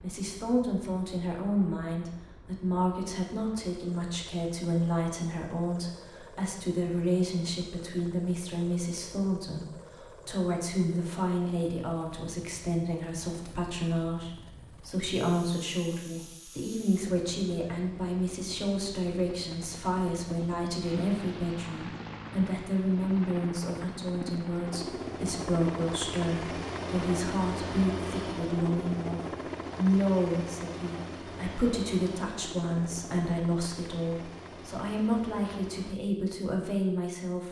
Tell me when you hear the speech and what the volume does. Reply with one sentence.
The speech can be heard from 0.0 to 37.4 s, at a steady volume.